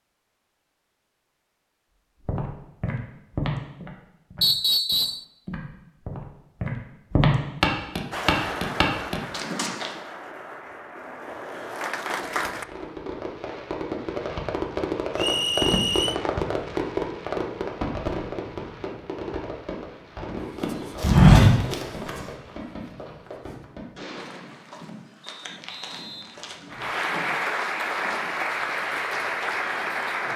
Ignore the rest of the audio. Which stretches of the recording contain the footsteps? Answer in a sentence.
You can hear the footsteps from 2.2 to 9.9 s and from 20.6 to 28.3 s.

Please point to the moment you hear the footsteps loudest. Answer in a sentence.
The volume of the footsteps peaks at 21 seconds.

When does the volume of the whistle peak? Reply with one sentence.
The volume of the whistle peaks at 5 seconds.